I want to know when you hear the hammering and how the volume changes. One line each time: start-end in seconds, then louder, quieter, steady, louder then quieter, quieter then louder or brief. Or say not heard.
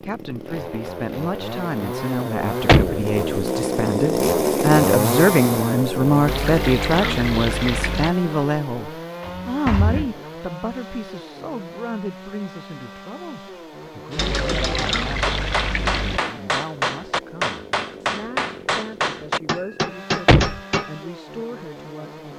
14.1-21.0 steady.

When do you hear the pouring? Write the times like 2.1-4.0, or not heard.
6.2-8.2, 14.2-16.2.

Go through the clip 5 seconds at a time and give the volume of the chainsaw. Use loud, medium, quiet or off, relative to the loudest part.
loud, loud, quiet, quiet, quiet.